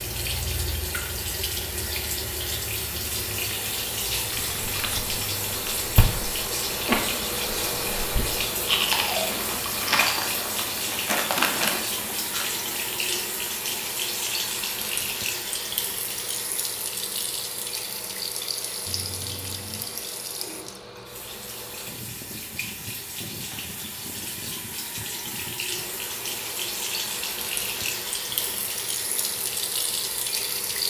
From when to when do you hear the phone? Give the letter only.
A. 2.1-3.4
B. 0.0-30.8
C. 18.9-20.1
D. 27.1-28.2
C.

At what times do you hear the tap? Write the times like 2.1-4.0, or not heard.
0.0-30.8.